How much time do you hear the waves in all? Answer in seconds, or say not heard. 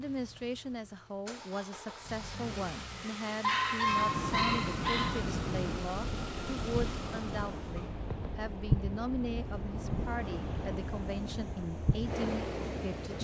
9 s.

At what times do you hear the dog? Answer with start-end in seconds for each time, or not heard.
3.4-5.2.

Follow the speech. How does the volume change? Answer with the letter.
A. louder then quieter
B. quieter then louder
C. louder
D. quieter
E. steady
E.